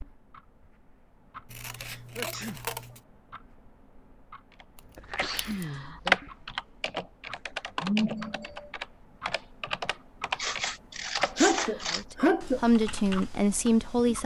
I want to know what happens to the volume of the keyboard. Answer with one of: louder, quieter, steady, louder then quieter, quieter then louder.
quieter.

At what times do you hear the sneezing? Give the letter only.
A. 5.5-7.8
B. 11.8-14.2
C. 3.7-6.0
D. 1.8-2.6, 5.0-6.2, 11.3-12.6
D.